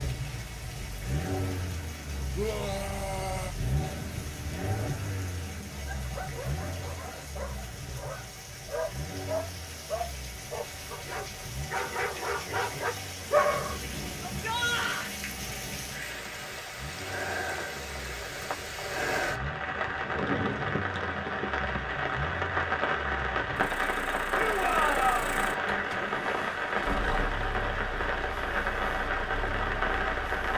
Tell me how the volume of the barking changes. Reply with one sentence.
The loudness of the barking goes up.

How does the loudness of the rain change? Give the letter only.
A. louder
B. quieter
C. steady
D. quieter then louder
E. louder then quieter
A.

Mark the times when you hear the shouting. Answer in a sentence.
You can hear the shouting from 2.4 to 3.5 s, from 14.2 to 15.2 s and from 24.4 to 25.2 s.